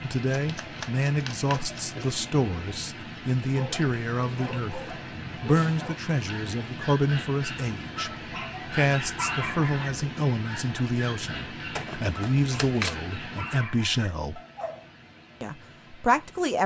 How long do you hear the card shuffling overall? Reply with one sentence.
The card shuffling can be heard for 3 seconds in total.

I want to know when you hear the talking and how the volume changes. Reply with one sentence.
The talking can be heard from 0.0 to 14.4 s, at a steady volume; and briefly from 15.4 to 16.6 s.